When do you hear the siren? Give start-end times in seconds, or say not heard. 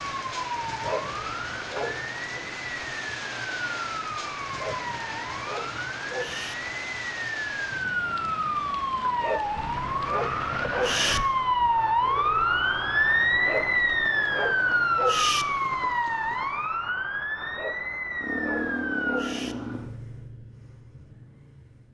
0.0-19.3.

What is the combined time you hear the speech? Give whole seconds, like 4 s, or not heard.
not heard.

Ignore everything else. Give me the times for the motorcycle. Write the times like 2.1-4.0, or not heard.
18.2-21.8.